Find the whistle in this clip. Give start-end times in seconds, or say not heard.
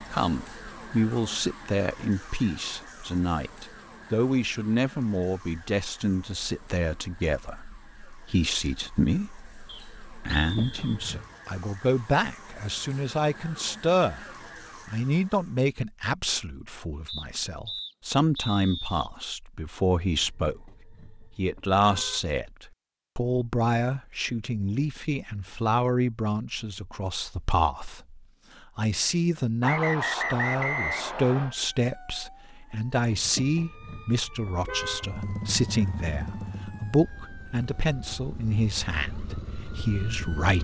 9.7-11.0, 17.1-19.1, 29.6-31.6.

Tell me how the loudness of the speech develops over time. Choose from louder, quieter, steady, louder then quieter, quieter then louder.
steady.